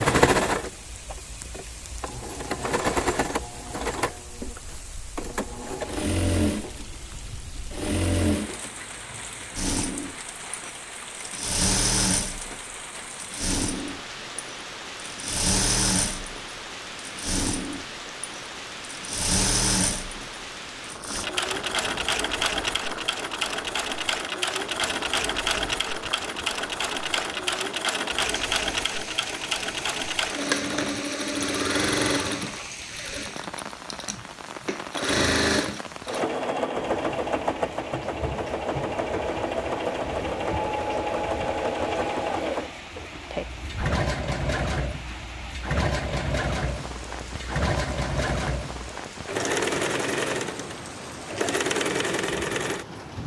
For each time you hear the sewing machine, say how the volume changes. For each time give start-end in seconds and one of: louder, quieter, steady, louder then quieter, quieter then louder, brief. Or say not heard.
0.0-53.0 steady.